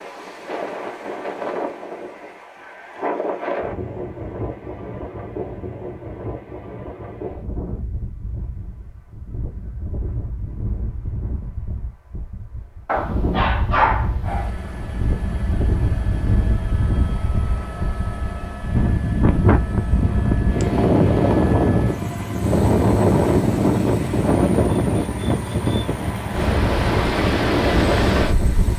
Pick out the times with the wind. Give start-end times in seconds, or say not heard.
0.0-28.7.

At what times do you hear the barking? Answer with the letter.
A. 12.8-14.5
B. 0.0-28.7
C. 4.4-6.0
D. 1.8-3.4
A.